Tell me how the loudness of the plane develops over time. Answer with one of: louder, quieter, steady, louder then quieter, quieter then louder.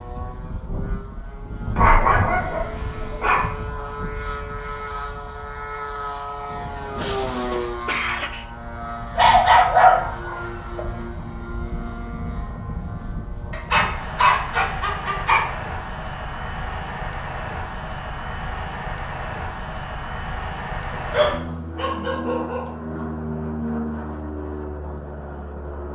steady.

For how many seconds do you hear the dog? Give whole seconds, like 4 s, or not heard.
7 s.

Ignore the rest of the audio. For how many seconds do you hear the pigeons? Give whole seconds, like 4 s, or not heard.
not heard.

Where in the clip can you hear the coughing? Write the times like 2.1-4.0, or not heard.
7.0-8.4.